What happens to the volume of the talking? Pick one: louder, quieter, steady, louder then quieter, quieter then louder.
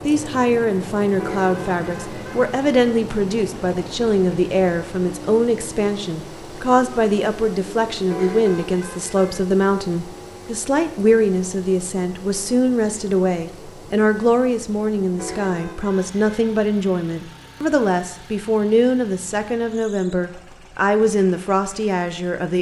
steady.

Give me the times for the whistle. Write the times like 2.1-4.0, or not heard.
not heard.